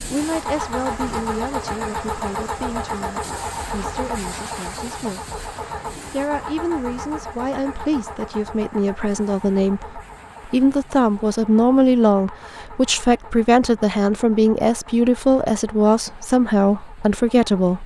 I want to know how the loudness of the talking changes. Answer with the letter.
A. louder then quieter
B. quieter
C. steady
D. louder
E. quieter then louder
D.